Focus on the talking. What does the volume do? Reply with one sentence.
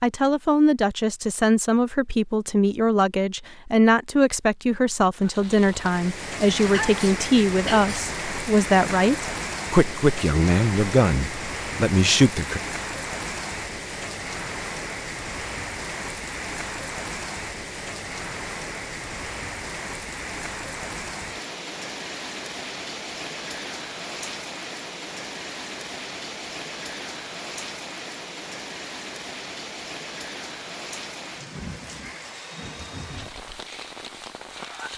The volume of the talking stays about the same.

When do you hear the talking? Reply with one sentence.
The talking can be heard from 0.0 to 12.6 s.